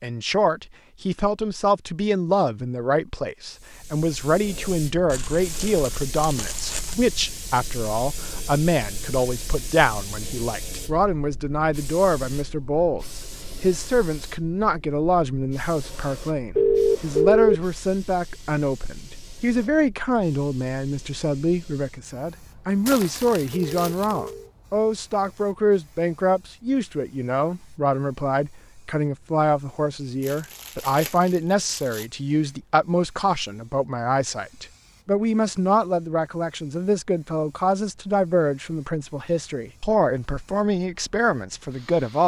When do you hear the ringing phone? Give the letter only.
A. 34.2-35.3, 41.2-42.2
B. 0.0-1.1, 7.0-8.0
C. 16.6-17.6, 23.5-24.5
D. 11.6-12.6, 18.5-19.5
C.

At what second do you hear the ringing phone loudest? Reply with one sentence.
The loudest moment of the ringing phone is at 17 seconds.